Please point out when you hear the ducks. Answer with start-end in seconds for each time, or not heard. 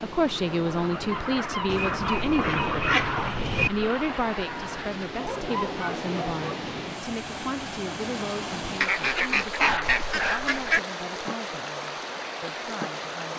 1.6-3.7, 8.8-10.8.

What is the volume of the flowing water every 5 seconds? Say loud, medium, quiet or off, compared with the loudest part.
medium, loud, loud.